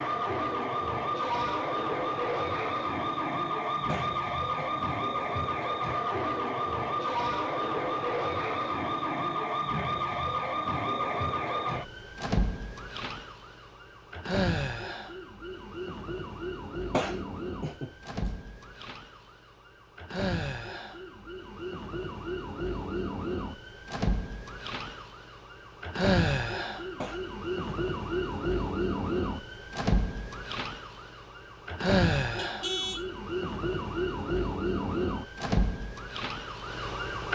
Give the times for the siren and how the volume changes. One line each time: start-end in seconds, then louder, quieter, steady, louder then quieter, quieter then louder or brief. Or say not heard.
0.0-37.3 quieter then louder.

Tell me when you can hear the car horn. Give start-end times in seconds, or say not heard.
32.4-33.1.